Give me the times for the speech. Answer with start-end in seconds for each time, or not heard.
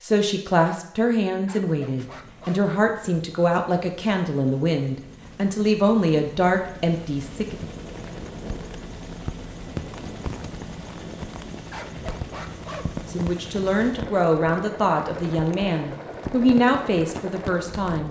0.0-7.5, 13.1-18.0.